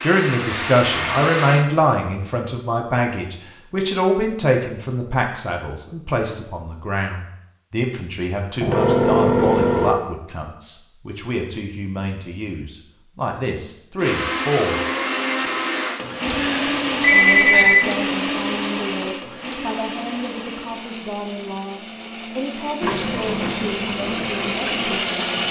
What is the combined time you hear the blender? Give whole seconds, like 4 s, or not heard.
13 s.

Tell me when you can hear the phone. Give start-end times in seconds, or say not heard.
8.6-9.9, 16.2-17.8.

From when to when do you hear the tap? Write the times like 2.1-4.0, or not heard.
22.8-25.4.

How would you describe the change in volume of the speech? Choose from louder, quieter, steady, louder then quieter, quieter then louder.
quieter.